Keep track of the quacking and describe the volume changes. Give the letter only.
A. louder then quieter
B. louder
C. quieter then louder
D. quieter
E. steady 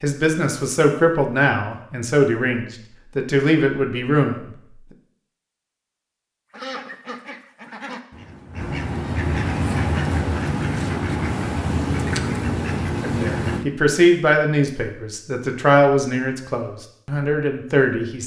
B.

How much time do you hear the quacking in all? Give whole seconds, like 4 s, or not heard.
7 s.